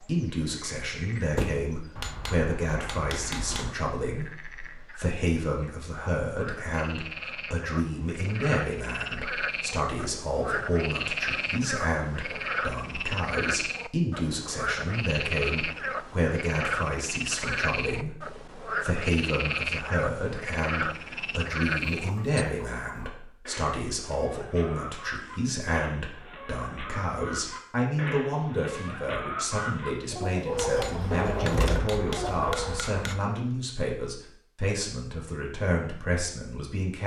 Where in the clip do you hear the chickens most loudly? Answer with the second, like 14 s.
31 s.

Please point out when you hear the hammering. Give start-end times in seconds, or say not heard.
1.9-3.8, 30.5-33.2.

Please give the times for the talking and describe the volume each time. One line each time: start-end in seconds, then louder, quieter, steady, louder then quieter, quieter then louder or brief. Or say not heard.
0.0-37.0 steady.